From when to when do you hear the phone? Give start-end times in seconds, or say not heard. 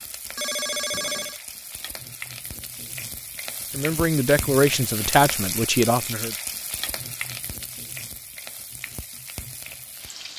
0.3-1.4.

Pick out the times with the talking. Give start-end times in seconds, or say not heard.
3.7-6.3.